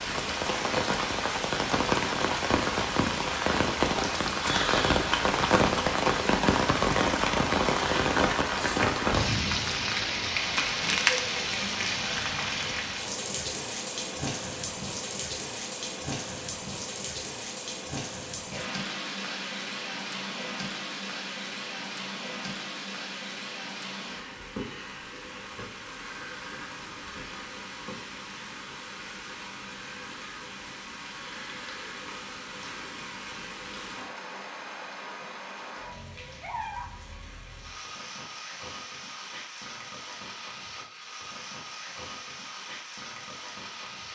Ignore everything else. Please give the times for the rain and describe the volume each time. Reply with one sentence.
The rain can be heard from 0.0 to 44.0 s, getting quieter.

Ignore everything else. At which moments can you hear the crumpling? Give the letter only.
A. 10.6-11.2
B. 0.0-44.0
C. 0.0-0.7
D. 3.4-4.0
A.